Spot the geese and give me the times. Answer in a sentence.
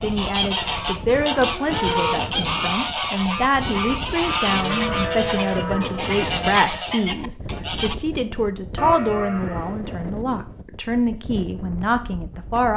The geese can be heard from 0.0 to 8.0 s.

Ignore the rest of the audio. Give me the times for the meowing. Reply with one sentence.
You can't hear the meowing here.